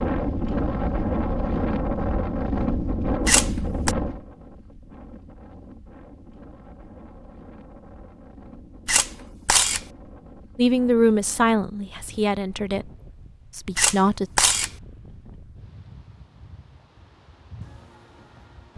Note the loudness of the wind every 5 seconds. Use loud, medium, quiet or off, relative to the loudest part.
loud, quiet, quiet, quiet.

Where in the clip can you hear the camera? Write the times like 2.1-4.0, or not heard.
3.2-4.0, 8.8-9.8, 13.8-14.7.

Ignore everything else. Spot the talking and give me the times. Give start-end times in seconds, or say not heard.
10.6-12.9, 13.6-14.3.